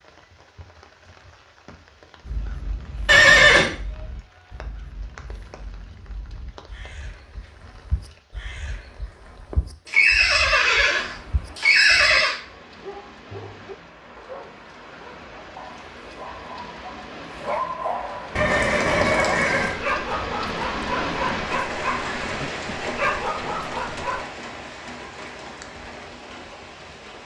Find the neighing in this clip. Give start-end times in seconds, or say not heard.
3.0-3.7, 9.8-12.4, 18.4-19.8.